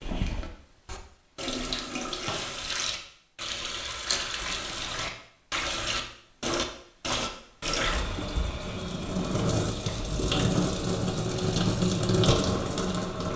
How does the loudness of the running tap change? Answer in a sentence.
The loudness of the running tap goes up.